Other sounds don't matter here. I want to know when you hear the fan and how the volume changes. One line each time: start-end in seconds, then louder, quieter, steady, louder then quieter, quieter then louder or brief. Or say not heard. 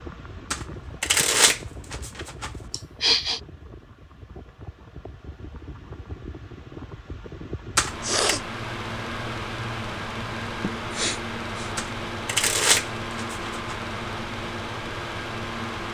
0.0-15.8 louder.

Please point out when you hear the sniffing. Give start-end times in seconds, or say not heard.
2.7-3.4, 8.0-8.4, 10.6-11.8.